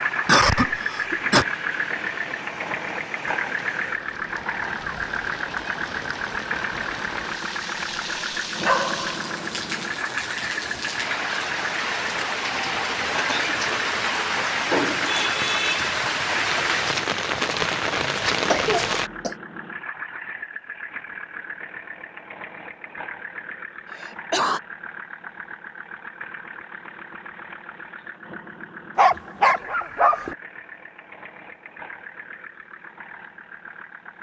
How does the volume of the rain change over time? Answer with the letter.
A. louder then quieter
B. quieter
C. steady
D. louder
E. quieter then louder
D.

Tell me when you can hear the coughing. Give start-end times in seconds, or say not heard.
0.2-1.4, 18.4-19.4, 23.9-24.6.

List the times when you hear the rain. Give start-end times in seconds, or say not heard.
0.0-19.1.